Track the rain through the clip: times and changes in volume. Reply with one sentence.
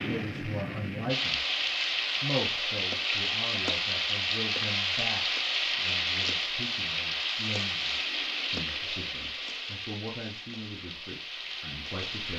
You can hear the rain from 0.0 to 12.3 s, getting quieter.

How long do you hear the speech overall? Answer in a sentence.
You can hear the speech for 12 seconds altogether.